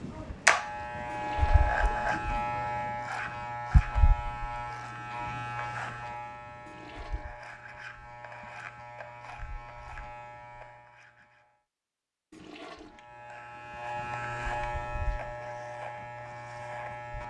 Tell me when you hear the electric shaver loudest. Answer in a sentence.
The volume of the electric shaver peaks at 1 second.